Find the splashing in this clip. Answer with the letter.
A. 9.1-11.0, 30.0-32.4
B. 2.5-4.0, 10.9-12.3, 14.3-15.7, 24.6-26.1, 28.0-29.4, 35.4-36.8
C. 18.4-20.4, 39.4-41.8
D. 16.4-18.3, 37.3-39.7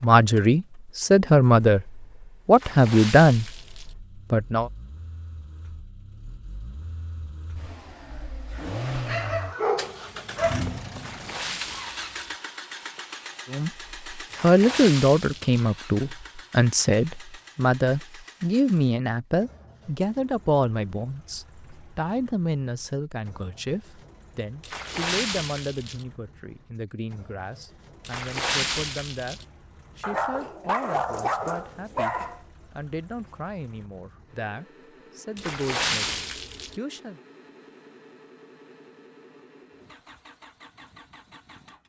B.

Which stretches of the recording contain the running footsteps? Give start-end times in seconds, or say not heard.
not heard.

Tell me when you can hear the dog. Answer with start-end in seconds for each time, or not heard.
9.1-11.0, 30.0-32.4.